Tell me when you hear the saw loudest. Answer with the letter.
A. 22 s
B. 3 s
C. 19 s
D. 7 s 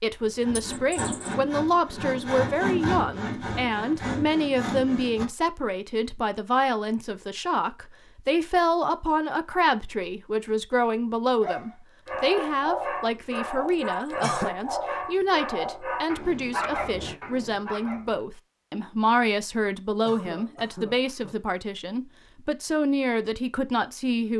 B.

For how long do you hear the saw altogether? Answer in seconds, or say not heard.
5 s.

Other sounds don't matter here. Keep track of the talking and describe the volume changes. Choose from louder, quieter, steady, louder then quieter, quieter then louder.
steady.